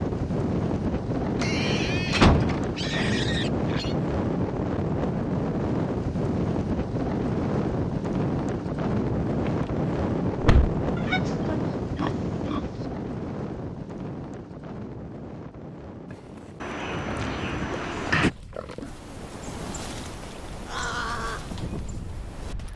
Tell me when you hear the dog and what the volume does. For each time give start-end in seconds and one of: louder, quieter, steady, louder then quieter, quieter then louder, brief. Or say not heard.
not heard.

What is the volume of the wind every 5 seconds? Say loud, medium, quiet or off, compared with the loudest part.
loud, loud, loud, quiet, quiet.